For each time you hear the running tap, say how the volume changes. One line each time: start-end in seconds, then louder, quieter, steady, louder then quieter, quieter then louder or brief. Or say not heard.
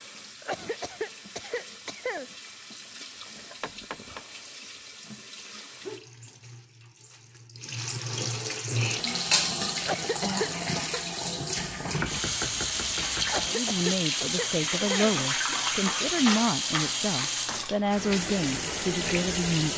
0.0-19.7 louder.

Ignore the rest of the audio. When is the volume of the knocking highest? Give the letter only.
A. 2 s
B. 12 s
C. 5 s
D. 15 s
B.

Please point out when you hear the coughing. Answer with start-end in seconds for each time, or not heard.
0.4-2.3, 9.8-11.0, 13.2-15.2.